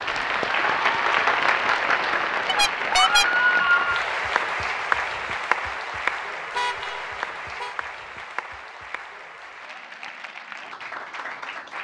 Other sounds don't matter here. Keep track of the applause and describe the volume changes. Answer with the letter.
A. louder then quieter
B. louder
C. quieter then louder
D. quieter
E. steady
D.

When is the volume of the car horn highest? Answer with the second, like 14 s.
3 s.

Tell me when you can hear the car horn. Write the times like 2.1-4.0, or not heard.
2.5-3.2, 6.5-7.8.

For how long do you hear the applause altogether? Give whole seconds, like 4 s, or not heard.
12 s.